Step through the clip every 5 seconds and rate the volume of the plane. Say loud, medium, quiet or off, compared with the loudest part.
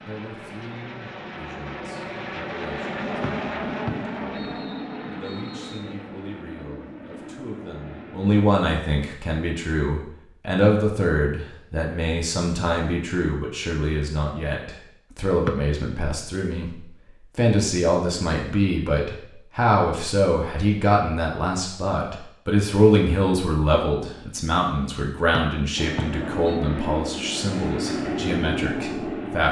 loud, medium, off, off, off, loud.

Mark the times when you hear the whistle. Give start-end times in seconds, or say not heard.
3.2-5.9, 15.4-16.1, 25.4-26.6.